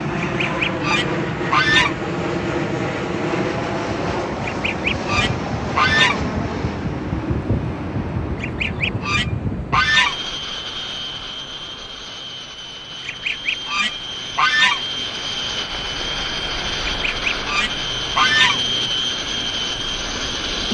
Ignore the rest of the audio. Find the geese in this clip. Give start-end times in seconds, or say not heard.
0.2-1.9, 4.4-6.2, 8.4-10.2, 13.1-14.8, 16.9-18.6.